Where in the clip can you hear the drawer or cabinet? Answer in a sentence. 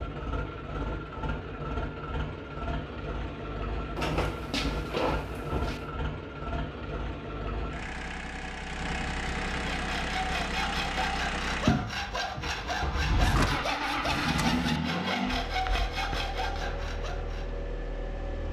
You can hear the drawer or cabinet from 4.0 to 5.9 s and from 13.2 to 14.7 s.